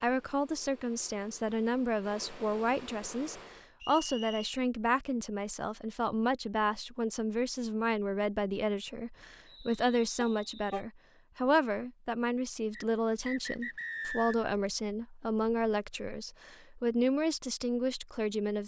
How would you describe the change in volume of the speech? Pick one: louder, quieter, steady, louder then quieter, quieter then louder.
steady.